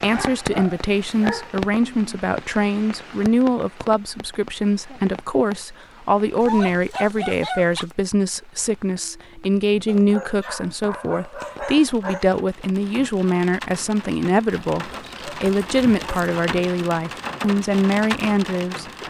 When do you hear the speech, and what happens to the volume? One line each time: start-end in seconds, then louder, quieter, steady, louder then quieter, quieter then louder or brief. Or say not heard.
0.0-19.0 steady.